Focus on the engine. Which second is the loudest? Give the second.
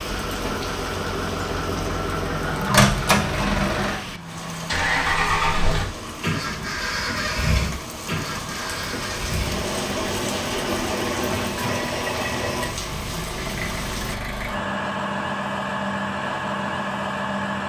3 s.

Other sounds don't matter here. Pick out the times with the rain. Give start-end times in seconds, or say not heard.
0.0-14.2.